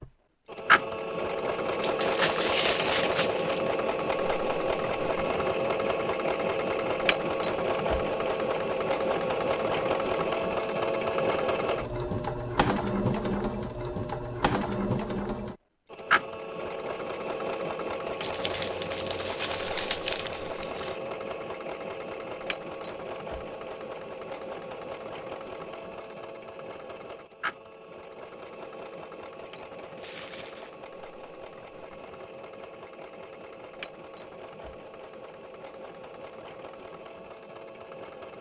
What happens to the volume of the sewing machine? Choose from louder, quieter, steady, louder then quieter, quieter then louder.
quieter.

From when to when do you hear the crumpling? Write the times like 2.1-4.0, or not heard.
1.8-3.6, 18.2-20.9, 29.9-30.8.